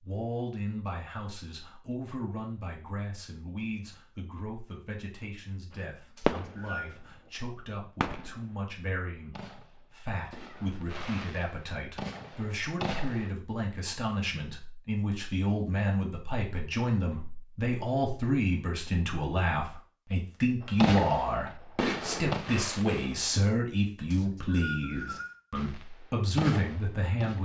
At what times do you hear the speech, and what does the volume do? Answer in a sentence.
The speech can be heard from 0.0 to 27.3 s, getting louder.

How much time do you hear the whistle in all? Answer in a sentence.
You can hear the whistle for 2 seconds altogether.